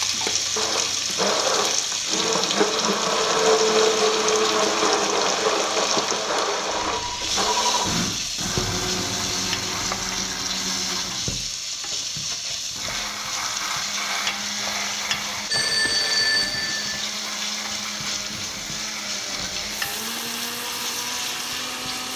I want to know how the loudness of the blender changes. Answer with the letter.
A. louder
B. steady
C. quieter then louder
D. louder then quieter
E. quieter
E.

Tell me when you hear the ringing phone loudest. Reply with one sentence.
The loudest moment of the ringing phone is at 16 seconds.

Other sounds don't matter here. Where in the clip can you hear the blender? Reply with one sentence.
You can hear the blender from 0.0 to 22.1 s.